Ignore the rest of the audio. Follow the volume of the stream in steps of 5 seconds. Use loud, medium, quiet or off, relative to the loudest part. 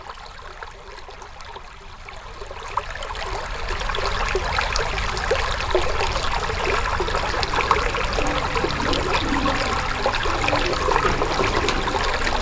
medium, loud, loud.